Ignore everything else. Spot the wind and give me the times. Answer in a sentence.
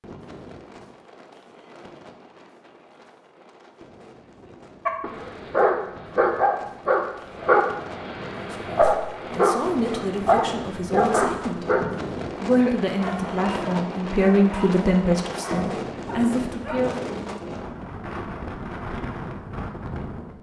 You can hear the wind from 0.0 to 20.3 s.